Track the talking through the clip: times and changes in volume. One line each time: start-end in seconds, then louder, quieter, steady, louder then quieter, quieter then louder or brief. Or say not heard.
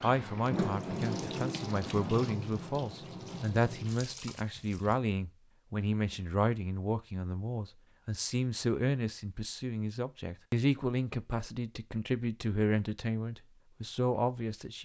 0.0-14.8 steady.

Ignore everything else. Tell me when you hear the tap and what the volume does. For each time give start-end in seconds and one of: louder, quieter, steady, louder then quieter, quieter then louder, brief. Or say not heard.
0.0-5.0 quieter.